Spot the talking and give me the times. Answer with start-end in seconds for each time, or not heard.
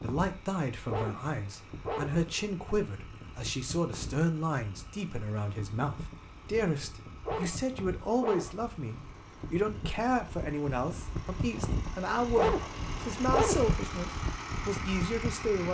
0.0-15.7.